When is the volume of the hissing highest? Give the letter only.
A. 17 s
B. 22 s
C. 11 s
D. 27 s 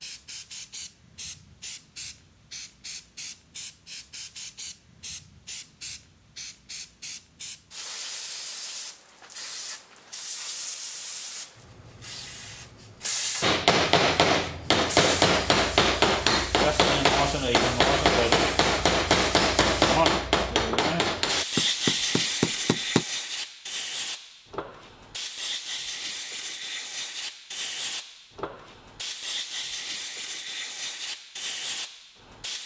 B.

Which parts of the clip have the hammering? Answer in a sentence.
The hammering can be heard from 13.4 to 23.1 s.